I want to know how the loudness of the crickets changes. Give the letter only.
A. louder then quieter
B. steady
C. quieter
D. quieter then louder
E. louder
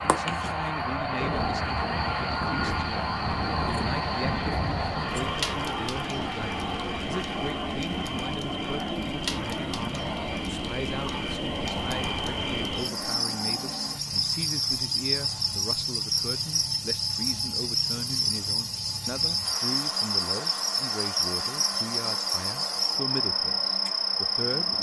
E.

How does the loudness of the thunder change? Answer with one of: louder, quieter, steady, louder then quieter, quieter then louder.
steady.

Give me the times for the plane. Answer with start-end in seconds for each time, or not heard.
0.0-24.7.